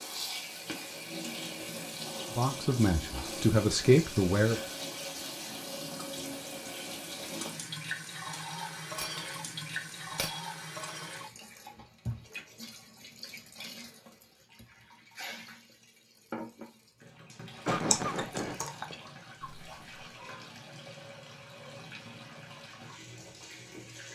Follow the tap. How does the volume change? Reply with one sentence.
The volume of the tap goes down.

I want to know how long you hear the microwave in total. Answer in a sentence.
You can't hear the microwave here.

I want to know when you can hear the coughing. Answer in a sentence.
The coughing can be heard from 17.6 to 18.6 s.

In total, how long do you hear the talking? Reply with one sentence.
You can hear the talking for 2 seconds altogether.